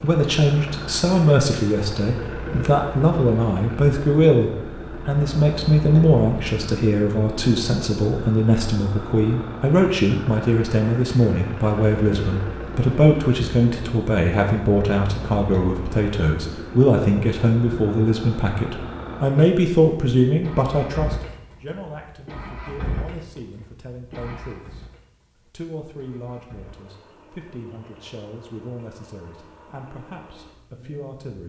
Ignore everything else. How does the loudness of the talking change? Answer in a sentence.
The volume of the talking goes down.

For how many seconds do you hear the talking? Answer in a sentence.
You can hear the talking for 31 seconds altogether.